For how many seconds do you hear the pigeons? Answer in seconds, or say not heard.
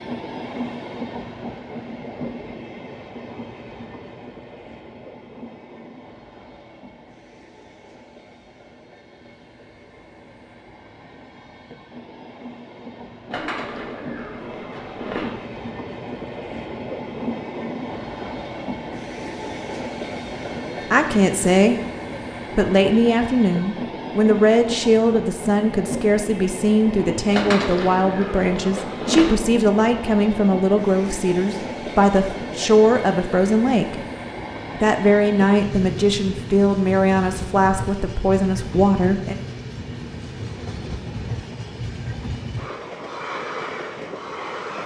4 s.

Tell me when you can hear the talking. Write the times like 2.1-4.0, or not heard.
20.9-21.8, 22.6-34.0, 34.8-39.4.